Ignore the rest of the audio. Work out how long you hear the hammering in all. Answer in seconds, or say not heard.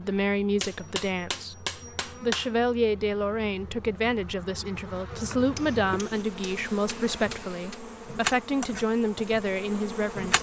4 s.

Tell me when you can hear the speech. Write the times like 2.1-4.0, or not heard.
0.0-10.3.